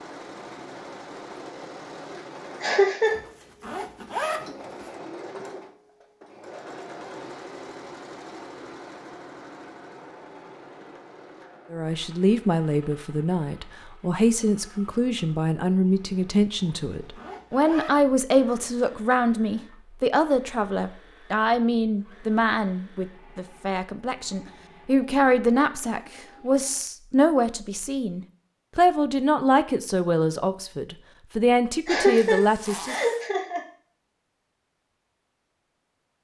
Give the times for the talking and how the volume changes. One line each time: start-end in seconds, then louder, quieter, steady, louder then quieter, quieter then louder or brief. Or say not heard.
11.7-33.0 steady.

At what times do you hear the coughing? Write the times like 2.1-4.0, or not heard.
2.6-3.2, 31.9-33.6.